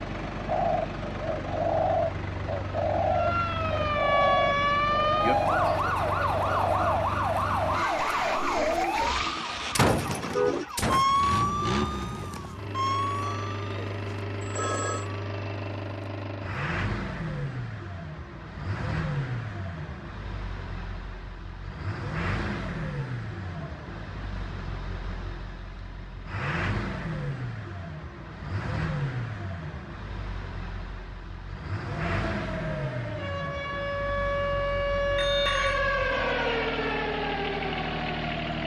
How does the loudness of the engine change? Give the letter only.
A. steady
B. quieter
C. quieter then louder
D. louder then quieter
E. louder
A.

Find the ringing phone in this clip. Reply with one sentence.
You can hear the ringing phone from 13.2 to 15.1 s and from 35.1 to 35.8 s.